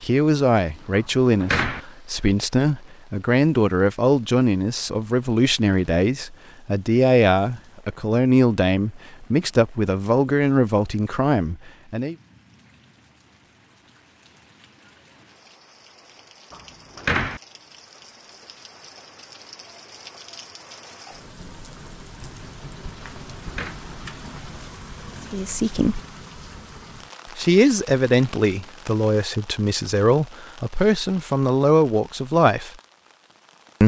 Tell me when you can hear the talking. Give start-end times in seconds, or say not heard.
0.0-12.2, 25.3-26.0, 27.4-32.7.